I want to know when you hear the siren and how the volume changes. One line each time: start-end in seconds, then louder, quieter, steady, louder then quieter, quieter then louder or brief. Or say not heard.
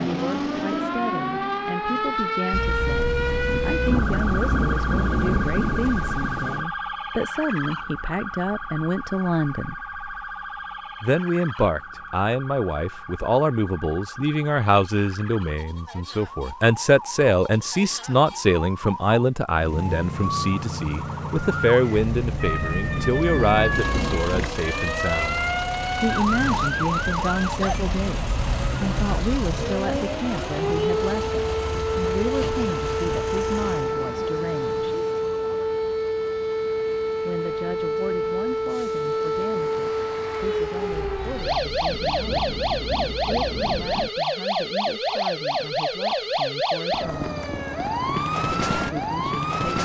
0.0-49.7 quieter then louder.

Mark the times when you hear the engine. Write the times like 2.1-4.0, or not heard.
19.5-34.0.